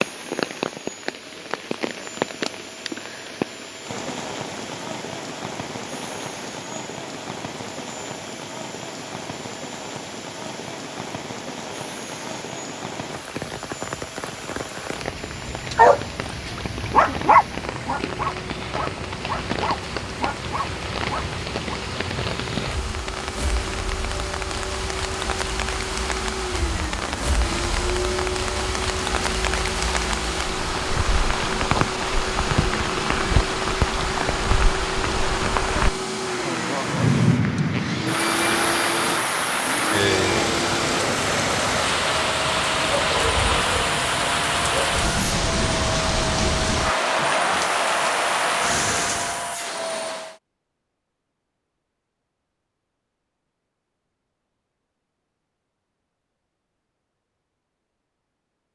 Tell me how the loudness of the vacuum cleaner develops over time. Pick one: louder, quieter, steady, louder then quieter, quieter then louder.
louder.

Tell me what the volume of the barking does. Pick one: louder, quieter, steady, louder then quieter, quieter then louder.
quieter.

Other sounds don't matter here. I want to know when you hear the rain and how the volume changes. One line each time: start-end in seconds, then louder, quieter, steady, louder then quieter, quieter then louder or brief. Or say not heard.
0.0-49.5 louder.